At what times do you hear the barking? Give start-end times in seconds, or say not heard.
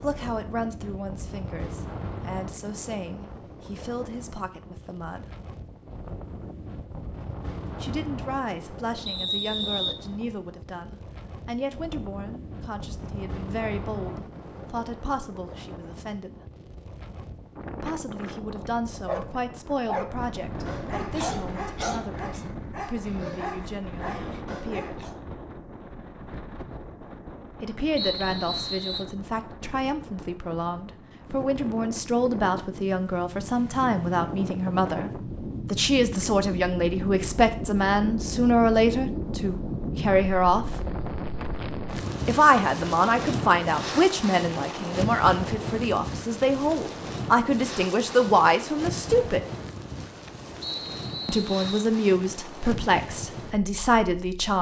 19.1-25.1.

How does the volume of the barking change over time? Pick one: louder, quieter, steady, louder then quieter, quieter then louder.
quieter.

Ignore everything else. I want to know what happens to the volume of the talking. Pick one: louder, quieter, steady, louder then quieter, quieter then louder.
louder.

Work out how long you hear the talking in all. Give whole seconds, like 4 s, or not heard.
45 s.